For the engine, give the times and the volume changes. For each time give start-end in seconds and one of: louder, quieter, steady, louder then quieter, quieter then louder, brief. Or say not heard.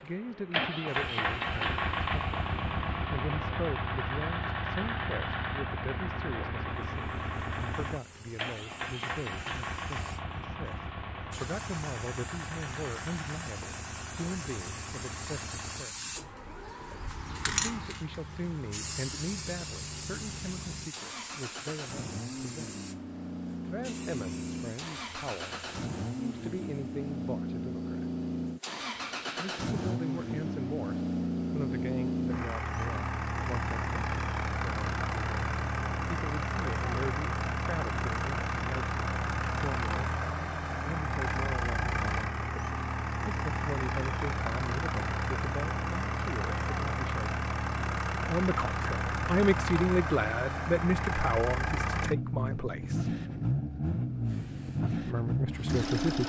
0.0-56.2 quieter then louder.